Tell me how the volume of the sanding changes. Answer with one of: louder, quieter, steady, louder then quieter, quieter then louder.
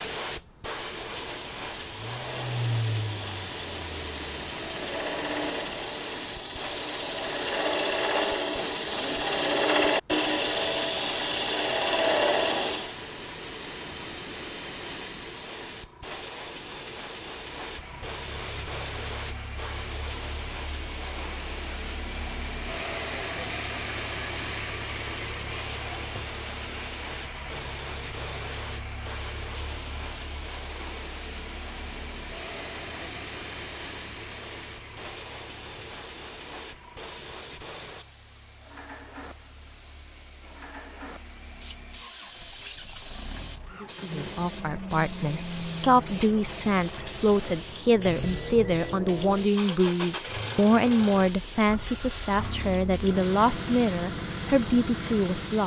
louder.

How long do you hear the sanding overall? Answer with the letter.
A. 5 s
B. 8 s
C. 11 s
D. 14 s
C.